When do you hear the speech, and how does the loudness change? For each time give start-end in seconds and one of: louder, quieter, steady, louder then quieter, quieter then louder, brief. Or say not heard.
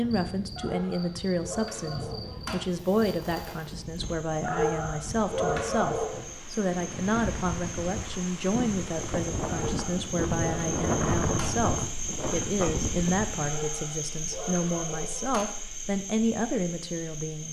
0.0-17.4 steady.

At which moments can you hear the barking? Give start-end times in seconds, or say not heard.
0.6-2.5, 4.4-6.2, 9.4-11.5, 13.4-15.4.